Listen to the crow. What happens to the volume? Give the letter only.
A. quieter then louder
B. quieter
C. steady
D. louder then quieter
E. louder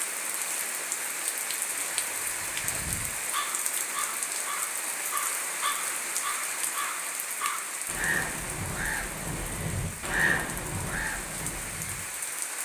E.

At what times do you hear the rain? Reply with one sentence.
The rain can be heard from 0.0 to 12.6 s.